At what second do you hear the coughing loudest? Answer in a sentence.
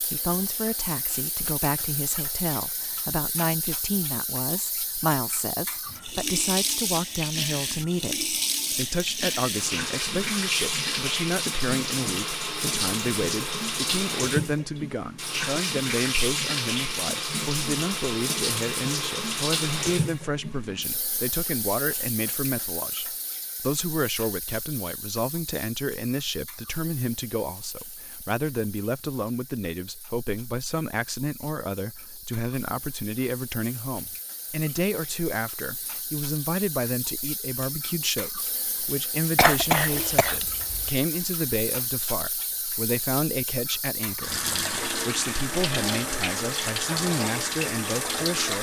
The volume of the coughing peaks at 40 seconds.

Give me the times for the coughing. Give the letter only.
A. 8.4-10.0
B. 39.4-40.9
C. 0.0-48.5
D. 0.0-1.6
B.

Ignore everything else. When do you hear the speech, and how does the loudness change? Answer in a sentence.
You can hear the speech from 0.0 to 48.5 s, at a steady volume.